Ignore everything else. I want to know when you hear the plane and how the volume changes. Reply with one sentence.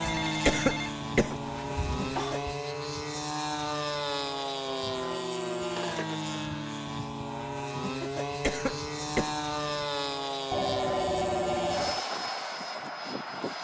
The plane can be heard from 0.0 to 13.5 s, at a steady volume.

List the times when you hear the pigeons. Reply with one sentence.
The pigeons can't be heard in this clip.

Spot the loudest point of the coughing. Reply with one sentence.
The volume of the coughing peaks at 1 second.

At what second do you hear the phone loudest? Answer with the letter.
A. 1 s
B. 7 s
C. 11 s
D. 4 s
C.